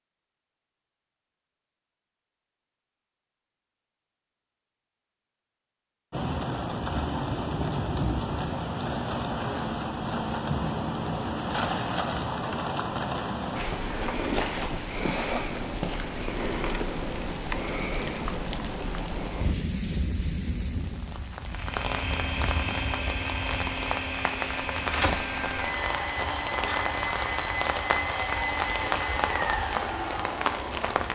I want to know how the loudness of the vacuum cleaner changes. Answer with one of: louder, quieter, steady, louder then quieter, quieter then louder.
steady.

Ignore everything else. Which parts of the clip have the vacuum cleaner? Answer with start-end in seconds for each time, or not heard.
21.5-31.1.